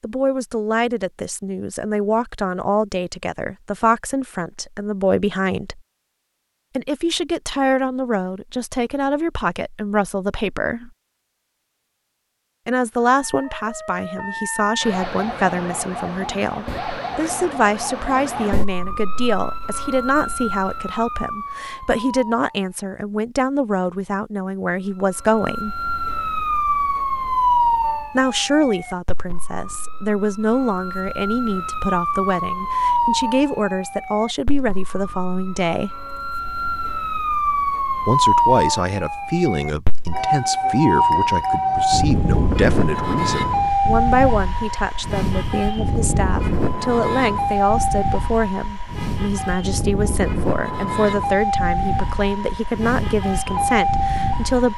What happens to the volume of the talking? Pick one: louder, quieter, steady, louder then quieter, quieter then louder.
steady.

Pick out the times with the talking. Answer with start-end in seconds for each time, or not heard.
0.0-5.8, 6.8-10.9, 12.7-25.8, 28.1-35.9, 38.0-54.7.